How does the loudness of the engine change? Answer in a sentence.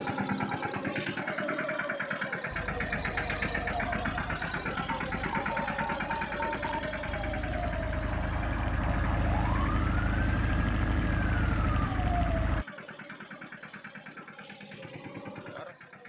The volume of the engine goes down.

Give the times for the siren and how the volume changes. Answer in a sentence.
The siren can be heard from 2.5 to 12.7 s, getting louder.